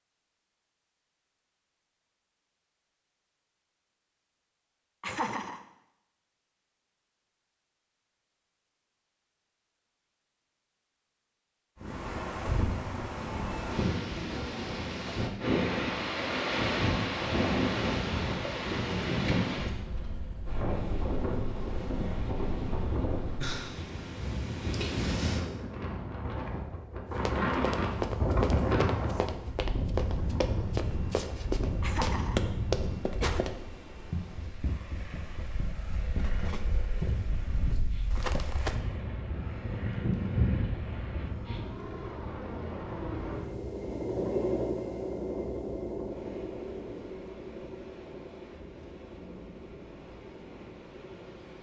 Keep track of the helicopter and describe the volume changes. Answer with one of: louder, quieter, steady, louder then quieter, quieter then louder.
louder then quieter.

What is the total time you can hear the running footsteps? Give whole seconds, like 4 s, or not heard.
12 s.